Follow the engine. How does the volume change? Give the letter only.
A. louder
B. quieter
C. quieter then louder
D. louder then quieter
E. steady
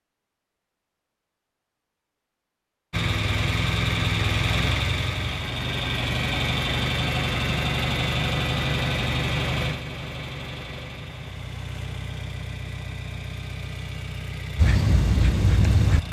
B.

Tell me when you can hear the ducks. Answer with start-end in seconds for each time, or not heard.
14.6-16.0.